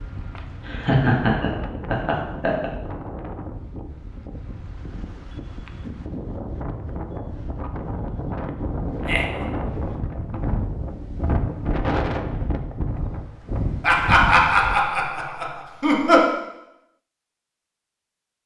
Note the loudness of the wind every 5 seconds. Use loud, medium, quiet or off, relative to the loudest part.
medium, loud, loud, off.